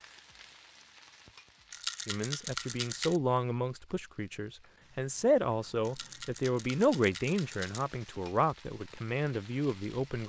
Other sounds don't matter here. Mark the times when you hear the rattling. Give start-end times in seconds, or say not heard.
1.7-3.2, 5.8-7.8.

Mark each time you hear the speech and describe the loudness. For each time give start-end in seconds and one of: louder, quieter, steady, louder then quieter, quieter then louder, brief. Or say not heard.
2.0-10.2 steady.